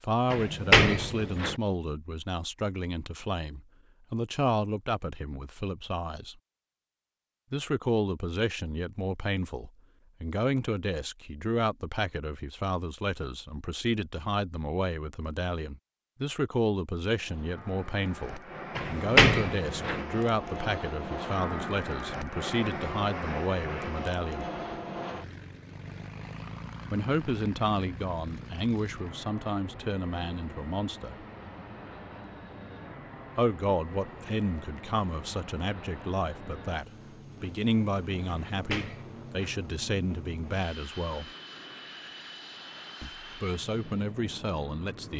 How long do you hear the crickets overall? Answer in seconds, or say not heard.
not heard.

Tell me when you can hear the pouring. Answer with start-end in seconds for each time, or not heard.
not heard.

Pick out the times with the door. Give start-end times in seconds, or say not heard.
0.3-1.6, 18.8-20.0, 38.5-39.5.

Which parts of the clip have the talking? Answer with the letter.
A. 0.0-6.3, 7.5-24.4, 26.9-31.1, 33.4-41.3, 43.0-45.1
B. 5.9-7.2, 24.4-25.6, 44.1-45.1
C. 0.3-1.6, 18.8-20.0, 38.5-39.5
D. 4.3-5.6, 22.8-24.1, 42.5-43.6
A.